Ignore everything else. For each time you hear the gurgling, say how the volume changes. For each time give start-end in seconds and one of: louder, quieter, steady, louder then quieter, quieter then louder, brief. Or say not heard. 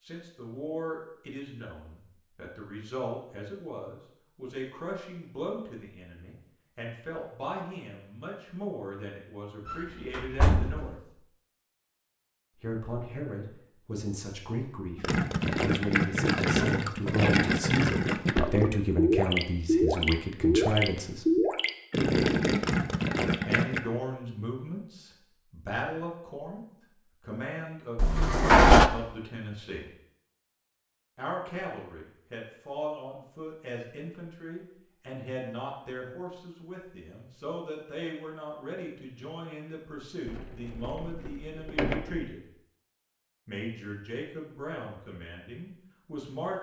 14.9-23.8 steady.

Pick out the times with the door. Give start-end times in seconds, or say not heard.
9.7-10.9, 27.9-28.9, 40.2-42.2.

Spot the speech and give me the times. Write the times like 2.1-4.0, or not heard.
0.0-11.2, 12.6-21.4, 23.4-26.6, 27.2-29.9, 31.1-42.5, 43.5-46.5.